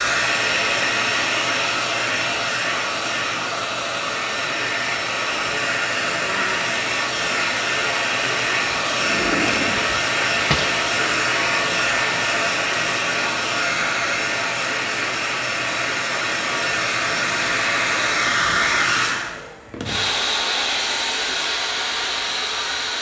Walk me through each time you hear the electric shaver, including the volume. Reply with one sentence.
The electric shaver can't be heard in this clip.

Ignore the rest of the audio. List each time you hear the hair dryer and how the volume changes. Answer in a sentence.
The hair dryer can be heard from 0.0 to 22.9 s, at a steady volume.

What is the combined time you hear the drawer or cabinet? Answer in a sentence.
You can hear the drawer or cabinet for 2 seconds altogether.